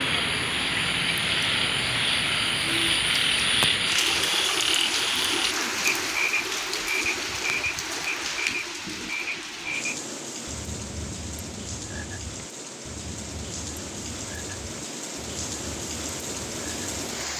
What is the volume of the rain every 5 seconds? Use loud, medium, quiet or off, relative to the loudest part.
loud, loud, medium, medium.